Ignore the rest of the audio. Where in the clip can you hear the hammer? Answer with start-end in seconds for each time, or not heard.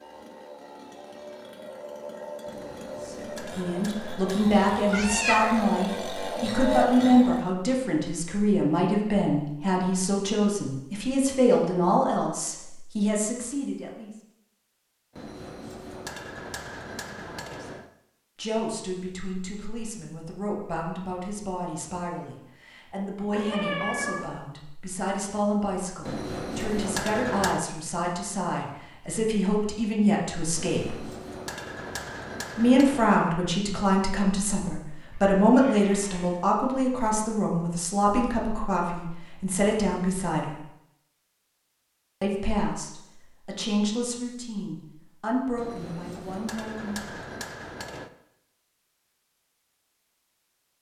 2.5-4.5, 15.2-17.9, 26.1-27.6, 30.6-33.0, 45.5-48.1.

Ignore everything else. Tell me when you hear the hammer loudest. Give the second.
27 s.